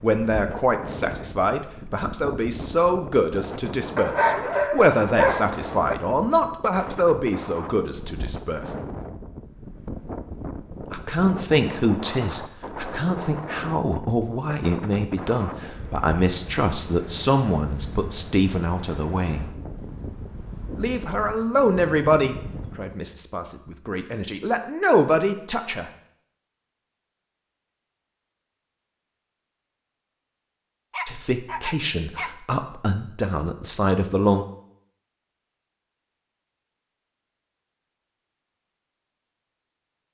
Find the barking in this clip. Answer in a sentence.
You can hear the barking from 4.0 to 6.0 s and from 30.9 to 32.3 s.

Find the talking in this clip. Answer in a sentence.
The talking can be heard from 0.0 to 8.7 s, from 10.9 to 19.4 s, from 20.8 to 25.9 s and from 31.1 to 34.5 s.